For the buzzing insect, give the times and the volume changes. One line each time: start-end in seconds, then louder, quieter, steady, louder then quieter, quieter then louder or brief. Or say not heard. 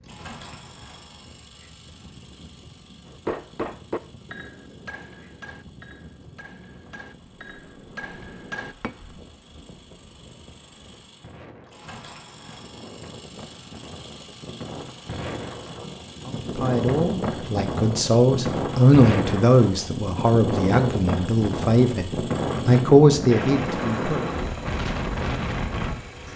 not heard.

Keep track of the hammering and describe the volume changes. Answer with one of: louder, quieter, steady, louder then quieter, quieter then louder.
quieter then louder.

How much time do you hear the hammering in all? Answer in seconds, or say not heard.
6 s.